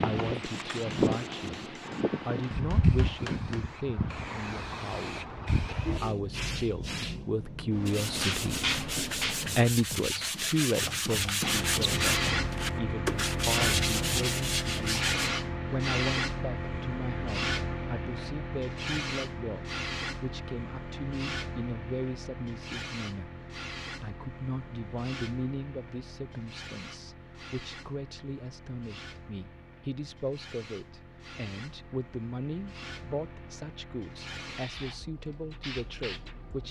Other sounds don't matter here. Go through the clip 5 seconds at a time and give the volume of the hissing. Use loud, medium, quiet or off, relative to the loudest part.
loud, loud, loud, loud, medium, quiet, quiet, quiet.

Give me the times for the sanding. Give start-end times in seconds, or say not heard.
7.8-15.3.